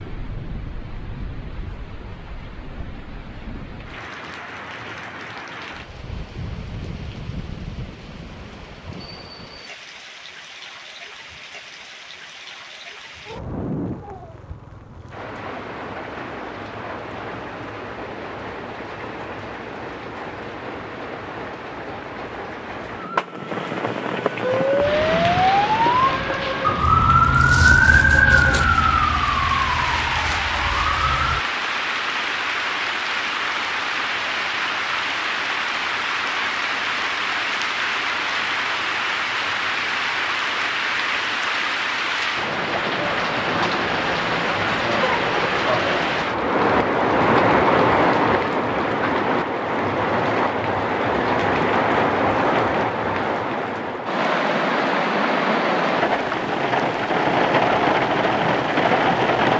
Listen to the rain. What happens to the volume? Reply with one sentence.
The volume of the rain goes up.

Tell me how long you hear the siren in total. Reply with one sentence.
You can hear the siren for 7 seconds altogether.